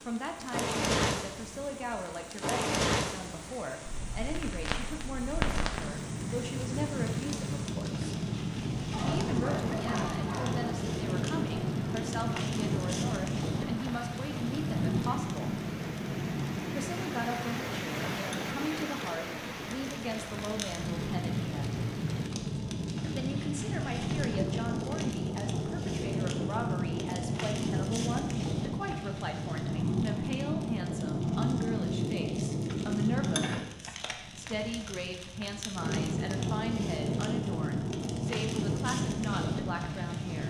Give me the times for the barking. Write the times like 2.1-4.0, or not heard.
8.9-10.7.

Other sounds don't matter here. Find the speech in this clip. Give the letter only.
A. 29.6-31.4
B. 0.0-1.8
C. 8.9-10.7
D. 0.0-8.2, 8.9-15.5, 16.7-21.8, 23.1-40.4
D.